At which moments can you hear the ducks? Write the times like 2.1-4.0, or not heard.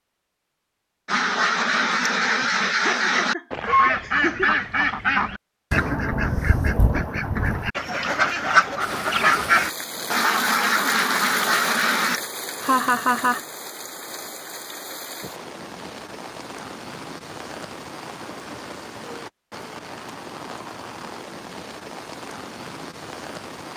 1.1-12.2.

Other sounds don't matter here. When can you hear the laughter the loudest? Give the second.
13 s.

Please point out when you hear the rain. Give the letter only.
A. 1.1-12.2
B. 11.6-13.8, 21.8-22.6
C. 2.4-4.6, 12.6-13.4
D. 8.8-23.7
D.